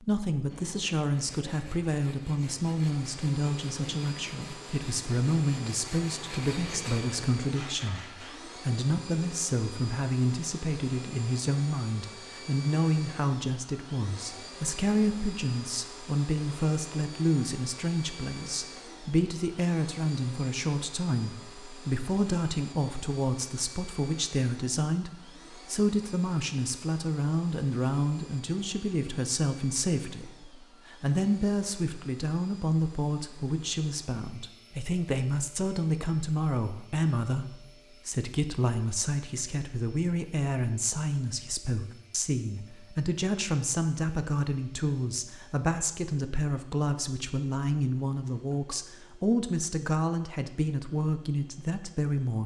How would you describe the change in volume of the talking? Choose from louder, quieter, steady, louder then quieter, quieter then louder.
steady.